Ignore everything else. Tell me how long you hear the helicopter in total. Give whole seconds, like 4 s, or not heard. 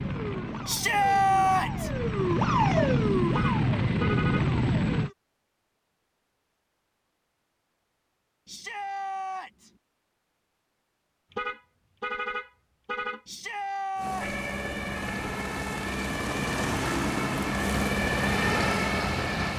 11 s.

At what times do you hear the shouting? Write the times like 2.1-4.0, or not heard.
0.7-1.9, 8.4-9.7, 13.2-14.4.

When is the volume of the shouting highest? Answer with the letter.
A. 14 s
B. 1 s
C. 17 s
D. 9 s
B.